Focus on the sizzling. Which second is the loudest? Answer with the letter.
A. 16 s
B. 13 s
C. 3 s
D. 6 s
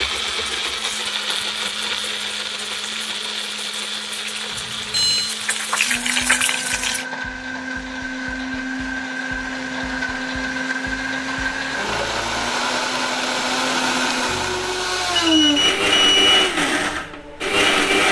D.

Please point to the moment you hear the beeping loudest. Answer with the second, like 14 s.
16 s.